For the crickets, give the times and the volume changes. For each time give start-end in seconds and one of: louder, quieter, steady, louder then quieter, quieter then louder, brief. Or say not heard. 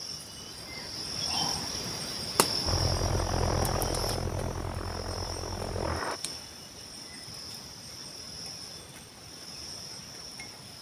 0.0-10.7 quieter.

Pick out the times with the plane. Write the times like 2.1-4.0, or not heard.
2.6-6.2.